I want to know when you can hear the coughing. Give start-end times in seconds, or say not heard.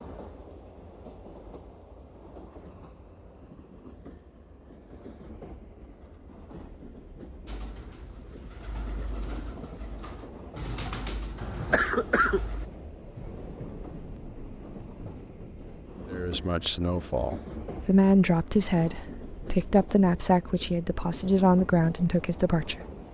11.3-12.7.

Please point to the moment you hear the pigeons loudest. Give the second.
11 s.